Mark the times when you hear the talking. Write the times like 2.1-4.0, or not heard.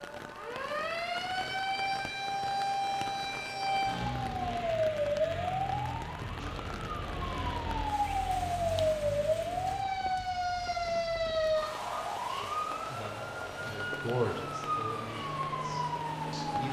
12.9-16.6.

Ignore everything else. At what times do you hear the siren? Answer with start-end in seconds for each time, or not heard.
0.0-16.6.